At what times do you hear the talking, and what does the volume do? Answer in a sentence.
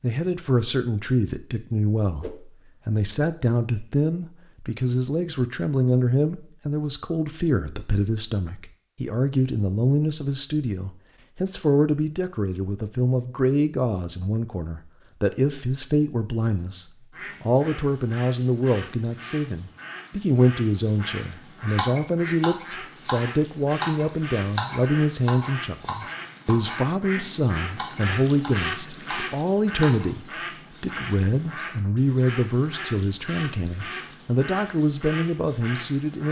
You can hear the talking from 0.0 to 36.2 s, at a steady volume.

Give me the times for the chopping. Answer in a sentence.
You can hear the chopping from 21.8 to 30.1 s.